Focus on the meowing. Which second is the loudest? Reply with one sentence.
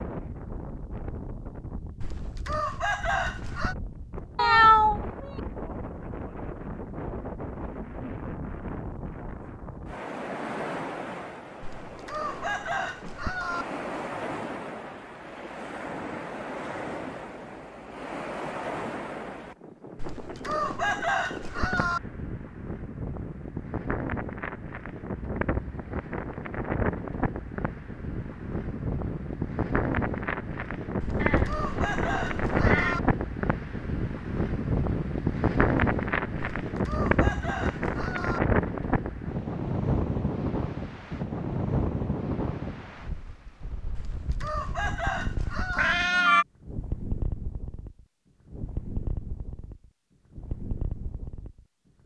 The loudest moment of the meowing is at 5 seconds.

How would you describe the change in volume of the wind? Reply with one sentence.
The loudness of the wind goes up, then down.